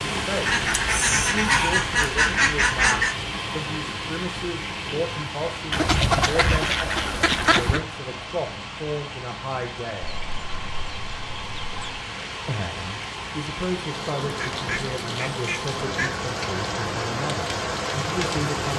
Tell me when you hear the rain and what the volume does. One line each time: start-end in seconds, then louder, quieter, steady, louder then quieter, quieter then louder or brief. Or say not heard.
0.0-18.7 quieter then louder.